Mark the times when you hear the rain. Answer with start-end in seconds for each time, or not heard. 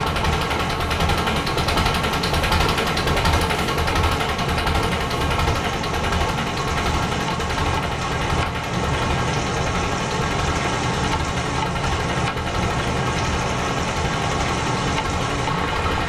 0.0-16.0.